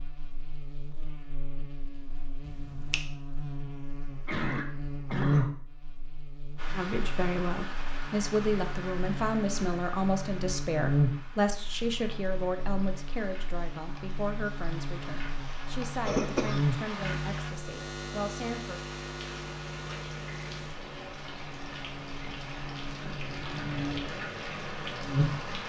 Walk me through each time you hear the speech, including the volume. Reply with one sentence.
The speech can be heard from 6.7 to 18.8 s, getting quieter.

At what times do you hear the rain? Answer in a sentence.
You can hear the rain from 6.5 to 25.6 s.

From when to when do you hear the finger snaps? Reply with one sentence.
The finger snaps can be heard from 2.4 to 3.1 s.